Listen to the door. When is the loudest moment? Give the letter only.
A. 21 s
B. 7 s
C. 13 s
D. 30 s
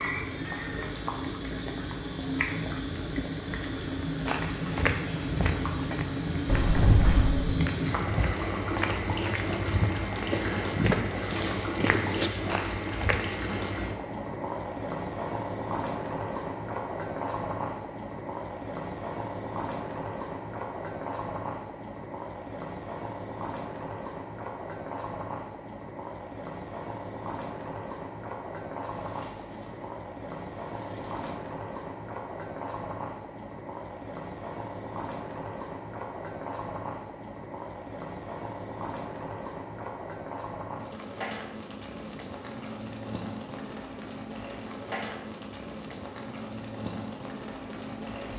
B.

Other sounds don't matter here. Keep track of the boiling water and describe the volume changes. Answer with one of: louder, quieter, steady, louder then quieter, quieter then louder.
quieter.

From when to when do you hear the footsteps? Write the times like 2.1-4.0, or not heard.
4.2-13.4.